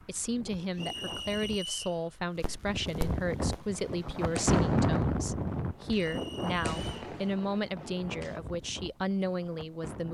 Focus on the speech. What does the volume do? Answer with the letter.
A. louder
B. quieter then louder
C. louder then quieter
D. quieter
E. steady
E.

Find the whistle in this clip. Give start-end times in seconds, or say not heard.
0.8-2.0, 5.9-6.9.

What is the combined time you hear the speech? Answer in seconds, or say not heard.
10 s.